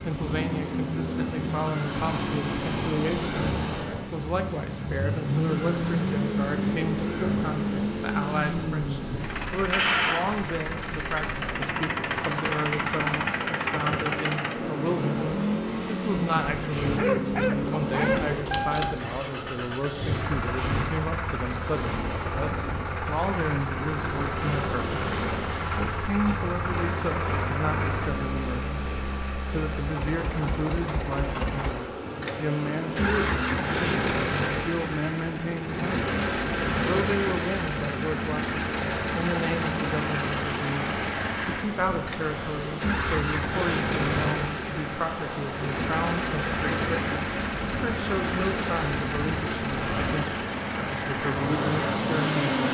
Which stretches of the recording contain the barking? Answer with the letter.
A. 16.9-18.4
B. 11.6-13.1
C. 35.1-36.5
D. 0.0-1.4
A.